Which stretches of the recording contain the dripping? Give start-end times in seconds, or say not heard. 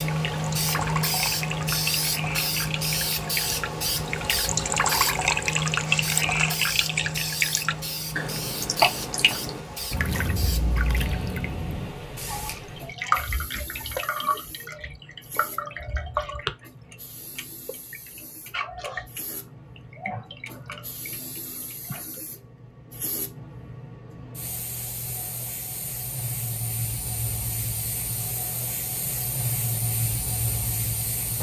0.0-22.2.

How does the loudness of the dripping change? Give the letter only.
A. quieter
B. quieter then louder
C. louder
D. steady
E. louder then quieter
E.